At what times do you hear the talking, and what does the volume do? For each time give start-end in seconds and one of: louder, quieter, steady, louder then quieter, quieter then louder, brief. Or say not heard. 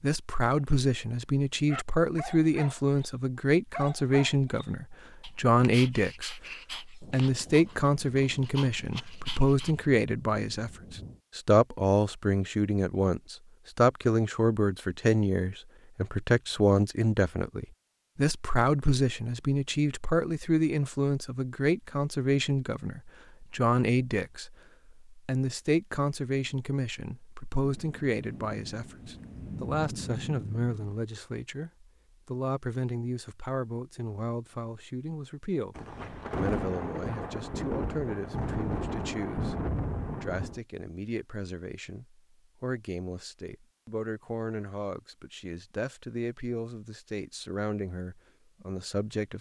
0.0-49.3 quieter.